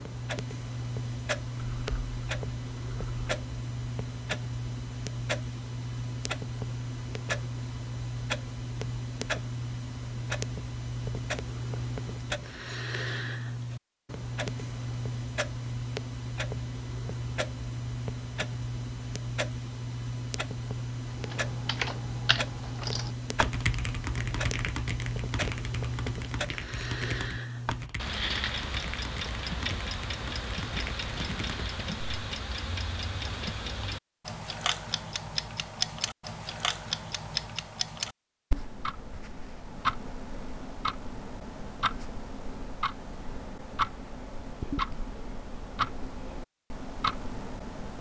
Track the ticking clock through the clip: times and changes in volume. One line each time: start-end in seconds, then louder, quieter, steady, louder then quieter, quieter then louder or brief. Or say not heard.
0.0-47.9 steady.